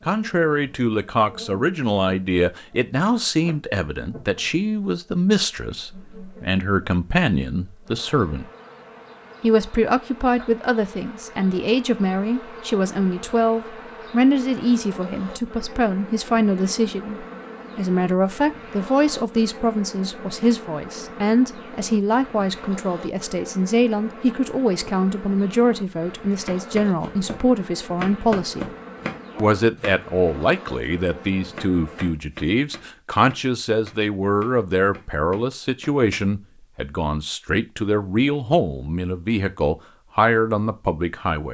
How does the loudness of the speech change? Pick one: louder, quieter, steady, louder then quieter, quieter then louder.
steady.